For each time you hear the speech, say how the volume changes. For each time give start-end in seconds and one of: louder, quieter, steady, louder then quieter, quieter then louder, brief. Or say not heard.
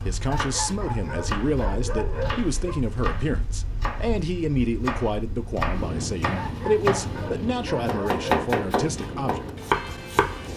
0.0-9.5 steady.